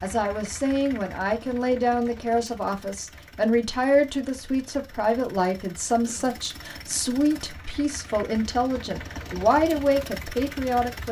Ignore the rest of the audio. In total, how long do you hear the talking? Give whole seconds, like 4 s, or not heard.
11 s.